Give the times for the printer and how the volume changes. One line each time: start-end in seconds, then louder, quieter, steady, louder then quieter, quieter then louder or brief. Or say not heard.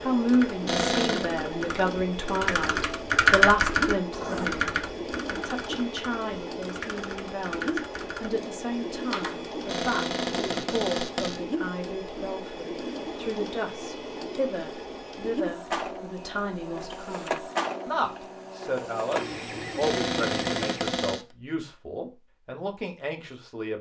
0.0-21.0 steady.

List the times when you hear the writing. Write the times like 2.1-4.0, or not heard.
4.1-4.5.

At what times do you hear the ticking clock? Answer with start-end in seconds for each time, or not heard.
not heard.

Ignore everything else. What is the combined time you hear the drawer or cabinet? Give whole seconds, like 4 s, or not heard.
4 s.